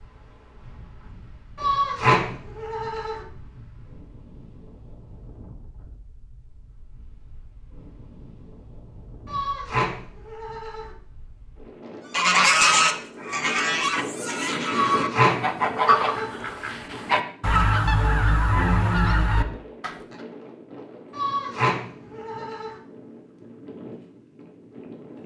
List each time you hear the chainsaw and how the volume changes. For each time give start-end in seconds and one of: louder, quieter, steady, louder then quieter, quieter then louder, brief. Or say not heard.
not heard.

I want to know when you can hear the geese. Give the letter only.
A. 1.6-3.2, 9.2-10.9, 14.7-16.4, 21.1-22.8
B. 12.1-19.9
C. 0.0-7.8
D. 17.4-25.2
B.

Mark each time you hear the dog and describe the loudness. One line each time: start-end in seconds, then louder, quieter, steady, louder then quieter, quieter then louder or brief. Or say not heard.
not heard.